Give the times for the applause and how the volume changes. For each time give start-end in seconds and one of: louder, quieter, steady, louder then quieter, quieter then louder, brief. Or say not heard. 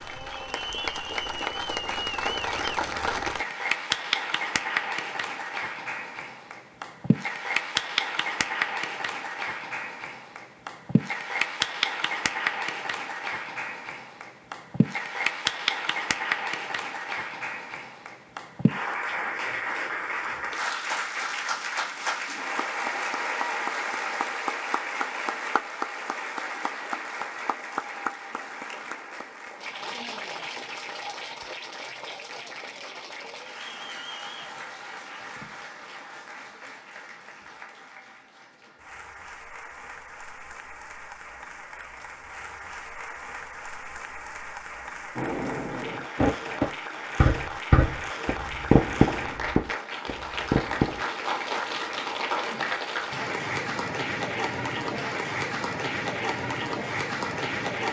0.0-57.8 quieter then louder.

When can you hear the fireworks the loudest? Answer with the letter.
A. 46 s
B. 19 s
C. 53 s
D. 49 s
D.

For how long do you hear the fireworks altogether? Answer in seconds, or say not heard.
6 s.